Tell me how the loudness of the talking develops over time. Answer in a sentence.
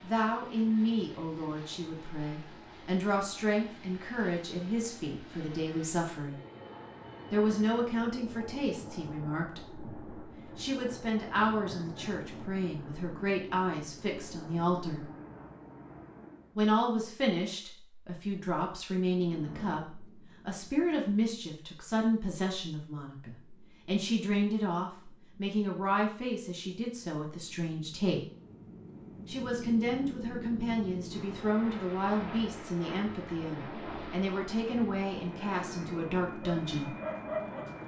The loudness of the talking stays about the same.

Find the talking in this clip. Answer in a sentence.
The talking can be heard from 0.0 to 6.4 s, from 7.3 to 15.1 s, from 16.6 to 28.2 s and from 29.2 to 36.9 s.